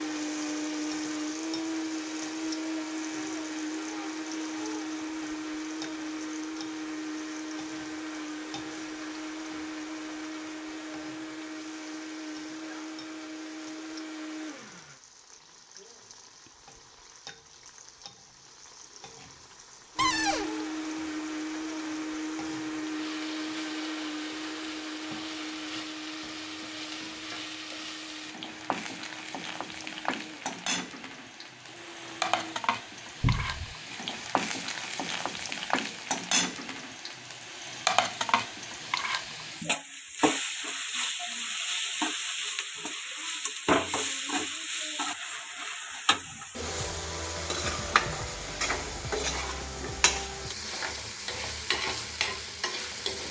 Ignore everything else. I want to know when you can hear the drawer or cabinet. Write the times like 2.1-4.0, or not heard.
19.9-20.5, 33.2-33.8.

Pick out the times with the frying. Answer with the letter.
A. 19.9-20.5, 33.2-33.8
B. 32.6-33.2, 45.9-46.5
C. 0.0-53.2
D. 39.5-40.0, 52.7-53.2
C.